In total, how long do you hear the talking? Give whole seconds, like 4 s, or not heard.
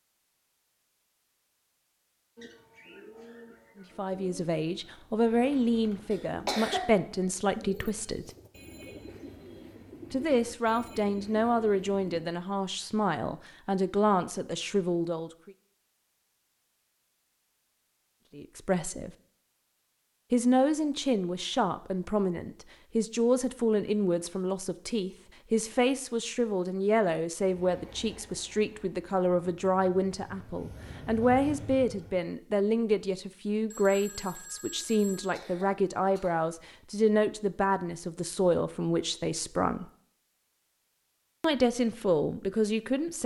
32 s.